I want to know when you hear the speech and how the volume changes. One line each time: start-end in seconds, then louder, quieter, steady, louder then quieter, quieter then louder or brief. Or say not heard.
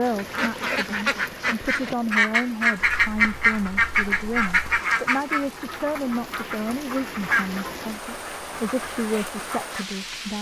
0.0-10.3 steady.